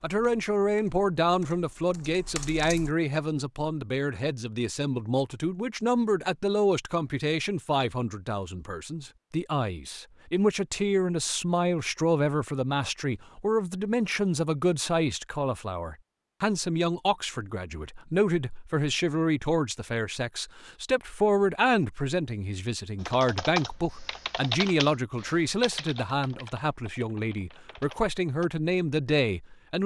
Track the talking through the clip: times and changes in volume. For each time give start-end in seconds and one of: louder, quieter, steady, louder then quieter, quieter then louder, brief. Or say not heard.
0.0-29.8 steady.